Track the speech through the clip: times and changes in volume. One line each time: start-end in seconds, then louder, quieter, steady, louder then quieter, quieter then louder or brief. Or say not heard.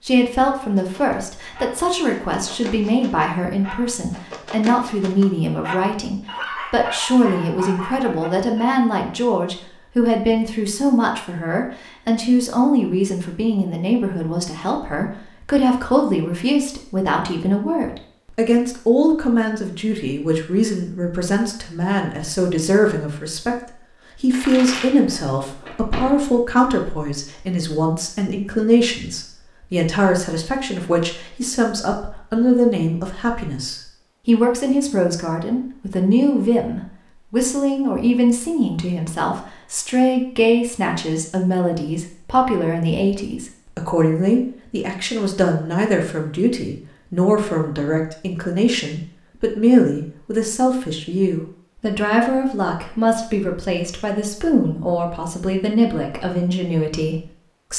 0.1-57.7 steady.